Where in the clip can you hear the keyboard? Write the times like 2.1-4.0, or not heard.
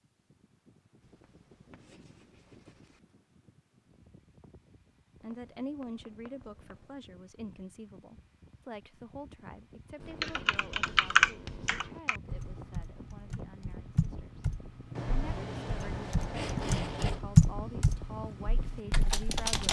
10.2-19.6.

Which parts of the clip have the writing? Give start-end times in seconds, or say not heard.
1.0-3.0, 5.2-7.0, 10.0-12.0, 14.9-17.2.